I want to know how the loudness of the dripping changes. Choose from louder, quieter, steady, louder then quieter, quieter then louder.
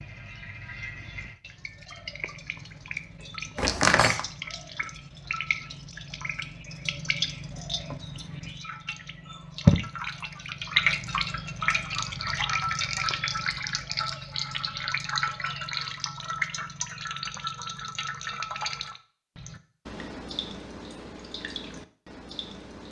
louder then quieter.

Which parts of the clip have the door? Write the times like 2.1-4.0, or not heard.
3.5-4.2.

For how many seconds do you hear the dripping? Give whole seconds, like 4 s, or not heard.
23 s.